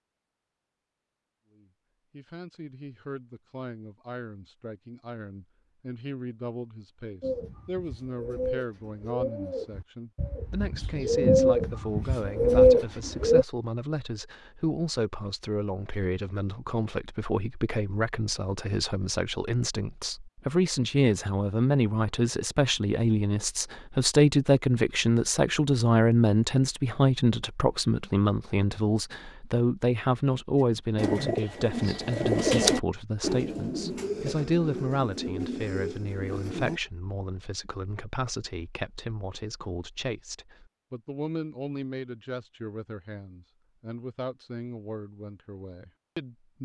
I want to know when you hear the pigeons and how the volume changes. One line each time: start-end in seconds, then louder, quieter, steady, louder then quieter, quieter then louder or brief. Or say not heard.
7.2-13.4 quieter then louder
30.6-36.8 louder then quieter.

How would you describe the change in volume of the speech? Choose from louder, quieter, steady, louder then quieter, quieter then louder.
louder then quieter.